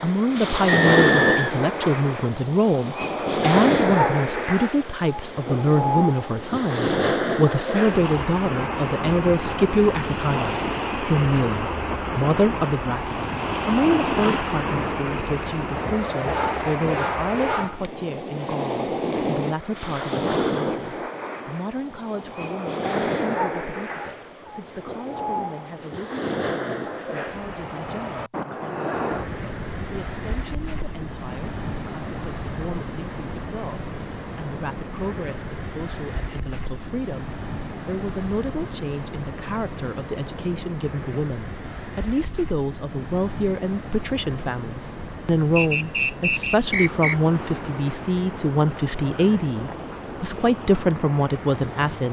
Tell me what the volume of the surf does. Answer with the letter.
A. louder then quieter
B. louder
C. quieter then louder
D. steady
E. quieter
E.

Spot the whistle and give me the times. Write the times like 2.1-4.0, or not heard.
0.7-1.6, 45.5-47.1.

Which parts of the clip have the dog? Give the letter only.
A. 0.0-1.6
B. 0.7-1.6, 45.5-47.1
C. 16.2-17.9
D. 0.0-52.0
C.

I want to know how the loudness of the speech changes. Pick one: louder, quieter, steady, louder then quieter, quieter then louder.
quieter then louder.